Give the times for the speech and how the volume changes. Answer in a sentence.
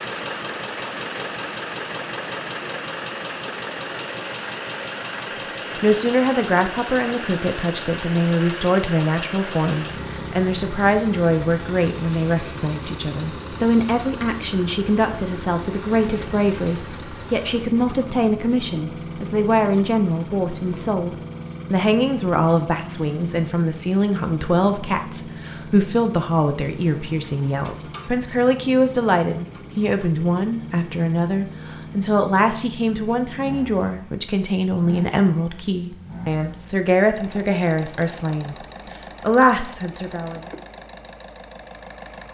You can hear the speech from 5.8 to 38.5 s, at a steady volume; and briefly from 39.2 to 40.5 s.